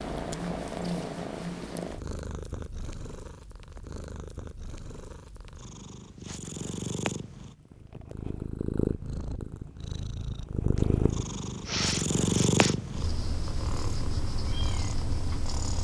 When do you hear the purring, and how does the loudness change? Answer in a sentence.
You can hear the purring from 0.0 to 15.7 s, getting quieter then louder.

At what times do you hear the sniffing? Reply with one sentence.
The sniffing can be heard from 11.7 to 12.8 s.